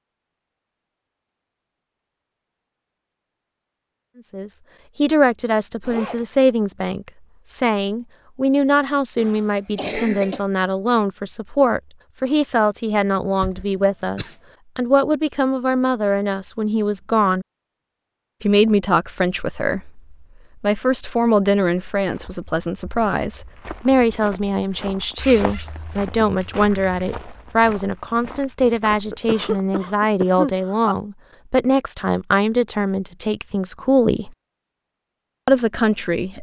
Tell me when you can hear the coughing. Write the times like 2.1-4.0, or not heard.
9.2-10.4, 13.4-14.3, 29.1-30.9.